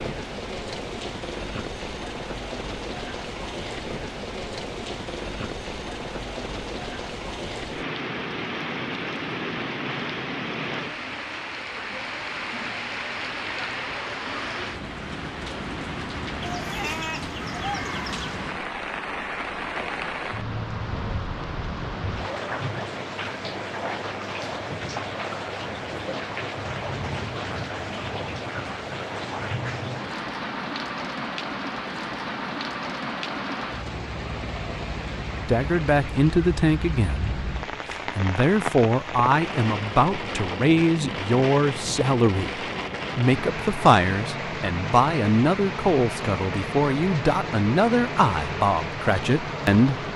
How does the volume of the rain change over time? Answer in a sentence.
The loudness of the rain stays about the same.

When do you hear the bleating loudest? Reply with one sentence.
The volume of the bleating peaks at 17 seconds.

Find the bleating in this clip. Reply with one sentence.
You can hear the bleating from 16.4 to 18.2 s.